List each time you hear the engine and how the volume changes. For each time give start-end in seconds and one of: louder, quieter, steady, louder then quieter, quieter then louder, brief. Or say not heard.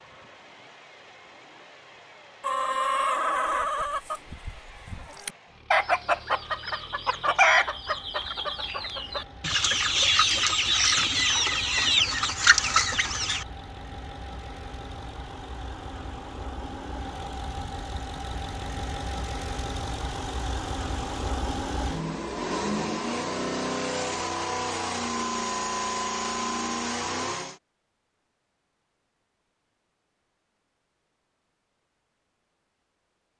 0.0-27.6 louder.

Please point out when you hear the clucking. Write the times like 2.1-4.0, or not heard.
2.4-13.4.